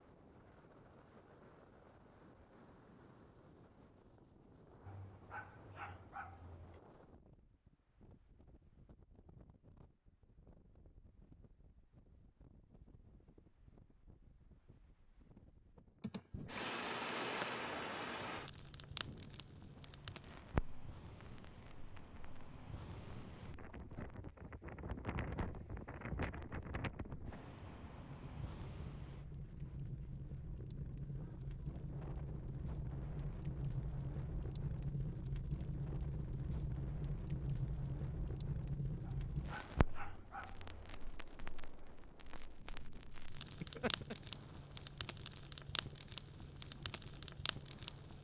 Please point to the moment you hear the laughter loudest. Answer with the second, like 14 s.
44 s.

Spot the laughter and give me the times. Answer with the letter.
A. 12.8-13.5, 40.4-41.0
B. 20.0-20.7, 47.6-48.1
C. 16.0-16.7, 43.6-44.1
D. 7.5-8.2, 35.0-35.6
C.